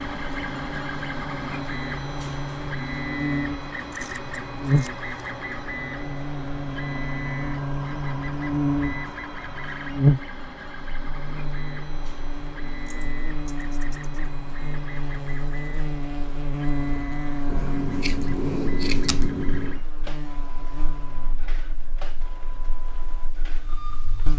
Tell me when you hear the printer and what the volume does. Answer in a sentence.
The printer can be heard from 0.0 to 24.3 s, getting quieter.